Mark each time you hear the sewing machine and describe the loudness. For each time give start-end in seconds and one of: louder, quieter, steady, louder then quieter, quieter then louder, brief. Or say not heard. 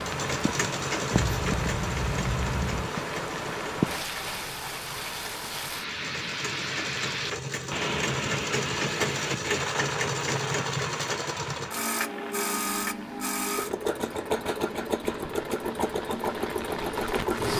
0.0-17.5 quieter then louder.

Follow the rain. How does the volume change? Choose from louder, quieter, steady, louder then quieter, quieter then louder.
quieter.